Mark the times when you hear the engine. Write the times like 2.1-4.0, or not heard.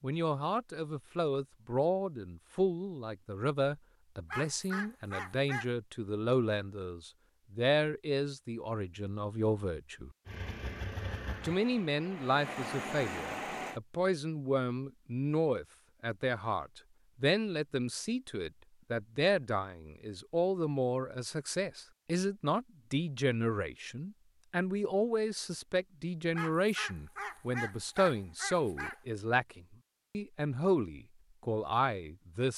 10.2-13.8.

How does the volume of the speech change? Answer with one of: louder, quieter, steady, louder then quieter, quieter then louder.
steady.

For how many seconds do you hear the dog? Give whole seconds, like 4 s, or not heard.
4 s.